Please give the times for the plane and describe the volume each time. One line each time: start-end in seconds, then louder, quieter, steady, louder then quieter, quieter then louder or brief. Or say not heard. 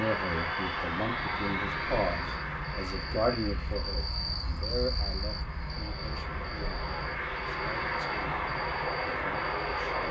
0.0-10.0 quieter then louder.